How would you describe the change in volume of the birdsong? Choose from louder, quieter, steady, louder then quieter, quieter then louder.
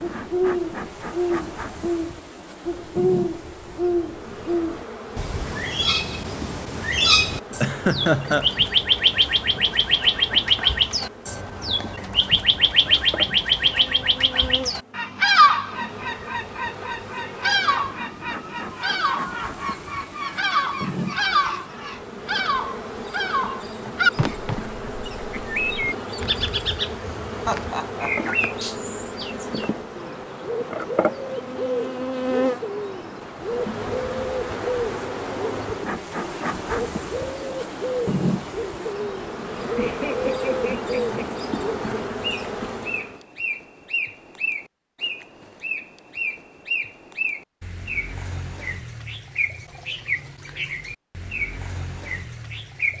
quieter.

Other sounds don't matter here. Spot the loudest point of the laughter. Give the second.
8 s.